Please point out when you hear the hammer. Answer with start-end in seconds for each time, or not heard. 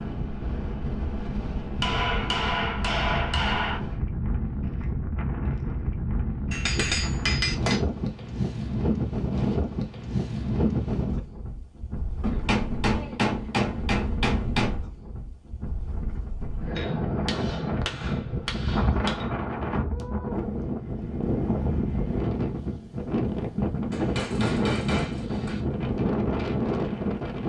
1.8-3.8, 6.5-7.8, 12.2-14.8, 16.8-19.2, 23.9-25.6.